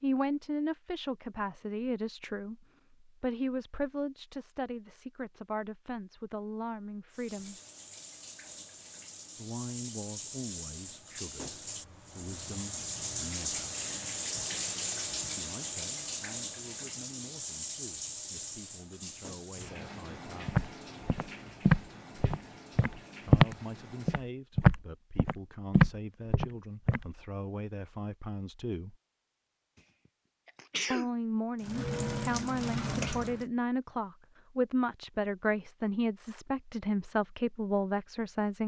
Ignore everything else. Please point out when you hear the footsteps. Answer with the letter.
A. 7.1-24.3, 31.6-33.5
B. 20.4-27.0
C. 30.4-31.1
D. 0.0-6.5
B.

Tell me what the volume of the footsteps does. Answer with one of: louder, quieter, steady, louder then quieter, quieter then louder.
quieter then louder.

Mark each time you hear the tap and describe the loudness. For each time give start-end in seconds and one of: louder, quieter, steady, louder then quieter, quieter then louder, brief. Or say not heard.
7.1-24.3 louder then quieter
31.6-33.5 brief.